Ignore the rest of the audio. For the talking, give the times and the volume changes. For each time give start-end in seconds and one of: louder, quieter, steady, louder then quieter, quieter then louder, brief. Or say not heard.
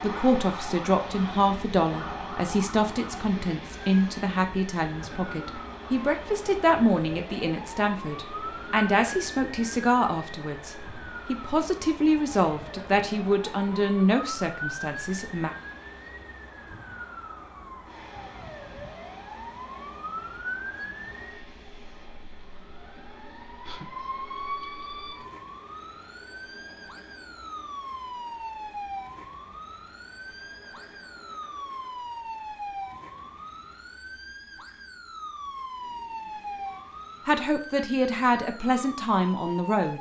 0.0-15.6 steady
37.2-39.9 brief.